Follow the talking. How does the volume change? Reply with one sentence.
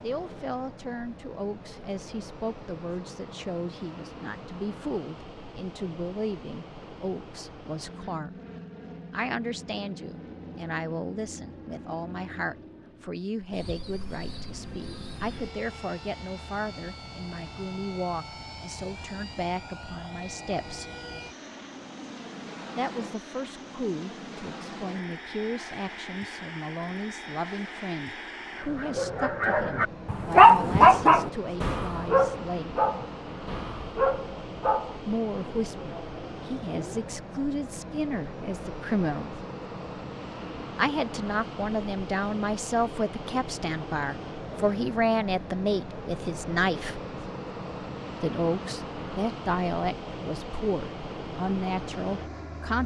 The volume of the talking goes up.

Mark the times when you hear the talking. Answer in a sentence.
You can hear the talking from 0.0 to 8.3 s, from 9.1 to 20.9 s, from 22.8 to 32.9 s, from 35.0 to 39.4 s, from 40.8 to 47.0 s and from 48.2 to 52.8 s.